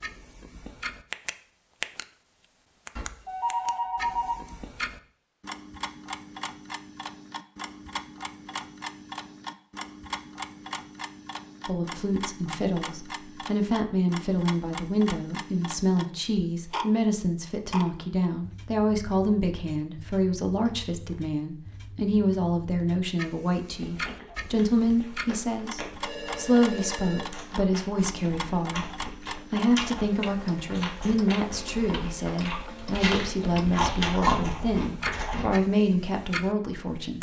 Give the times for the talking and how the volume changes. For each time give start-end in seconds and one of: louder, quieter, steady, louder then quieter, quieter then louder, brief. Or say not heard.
11.7-37.1 steady.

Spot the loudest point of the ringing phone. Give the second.
4 s.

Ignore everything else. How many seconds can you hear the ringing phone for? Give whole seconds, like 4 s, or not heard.
3 s.